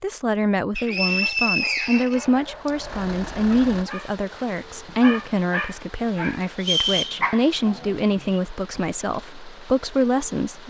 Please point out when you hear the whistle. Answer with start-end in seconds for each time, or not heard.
0.8-2.7, 6.6-7.2.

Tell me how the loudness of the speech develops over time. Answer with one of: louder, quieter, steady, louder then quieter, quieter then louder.
steady.